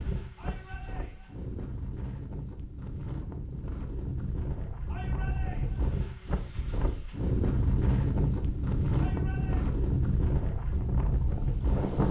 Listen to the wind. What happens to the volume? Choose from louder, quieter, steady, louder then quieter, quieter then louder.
louder.